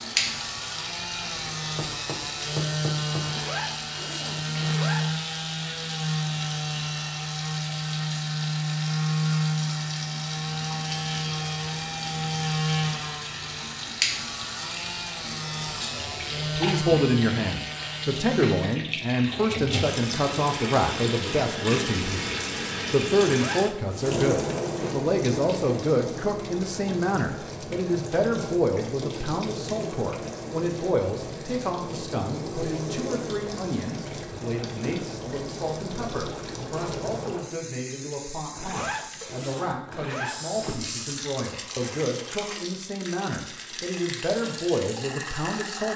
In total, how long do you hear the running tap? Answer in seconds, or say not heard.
46 s.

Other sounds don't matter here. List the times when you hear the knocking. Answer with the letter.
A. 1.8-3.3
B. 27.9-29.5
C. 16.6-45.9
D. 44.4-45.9
A.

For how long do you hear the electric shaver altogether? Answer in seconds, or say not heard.
19 s.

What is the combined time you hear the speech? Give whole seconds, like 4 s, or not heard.
29 s.